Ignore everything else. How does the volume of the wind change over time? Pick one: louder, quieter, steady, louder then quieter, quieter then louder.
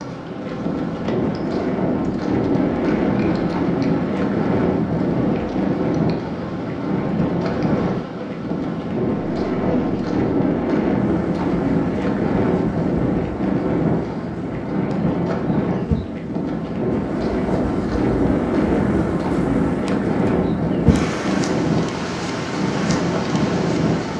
steady.